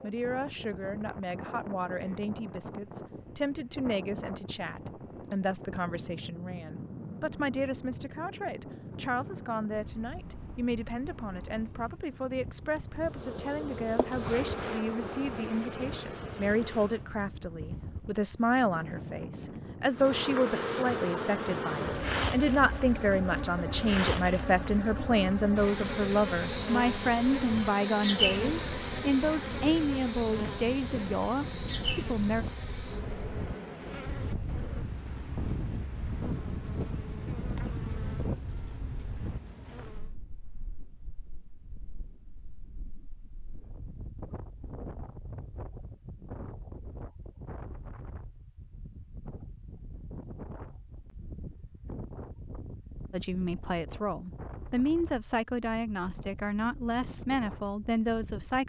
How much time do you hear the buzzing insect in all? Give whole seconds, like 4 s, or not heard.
24 s.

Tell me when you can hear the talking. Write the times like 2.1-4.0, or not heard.
0.0-32.5, 53.1-58.6.